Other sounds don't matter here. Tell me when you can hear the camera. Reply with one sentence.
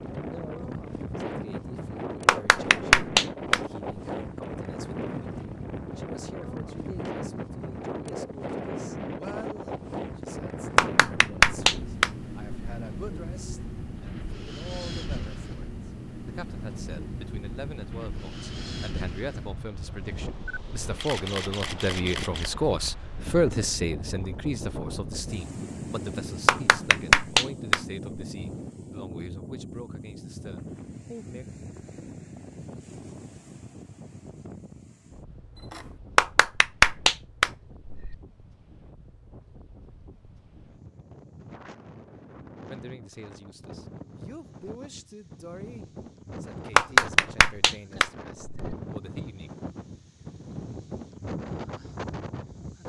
You can hear the camera from 20.4 to 22.5 s and from 35.5 to 36.0 s.